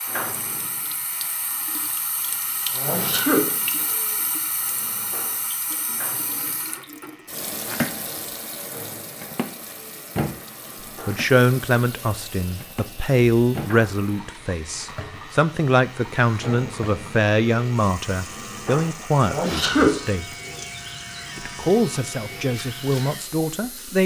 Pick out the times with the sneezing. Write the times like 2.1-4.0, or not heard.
2.8-3.4, 19.2-19.9.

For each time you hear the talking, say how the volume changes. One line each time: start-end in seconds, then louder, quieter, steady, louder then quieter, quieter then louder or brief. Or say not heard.
11.1-20.2 steady
21.4-24.0 brief.